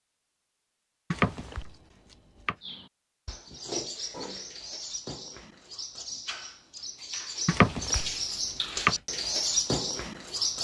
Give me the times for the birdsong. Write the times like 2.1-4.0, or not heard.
2.6-10.5.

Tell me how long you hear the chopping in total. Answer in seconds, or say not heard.
3 s.